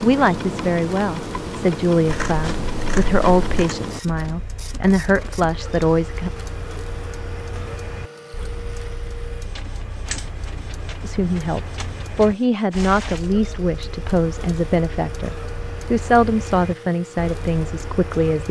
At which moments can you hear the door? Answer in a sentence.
The door can't be heard in this clip.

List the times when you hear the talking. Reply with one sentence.
You can hear the talking from 0.0 to 6.3 s and from 11.0 to 18.4 s.